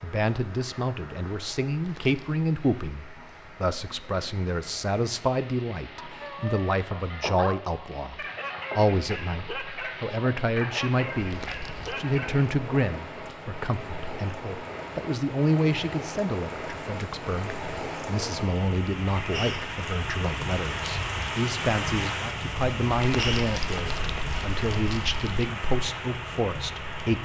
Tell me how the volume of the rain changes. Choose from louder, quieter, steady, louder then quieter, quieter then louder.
louder.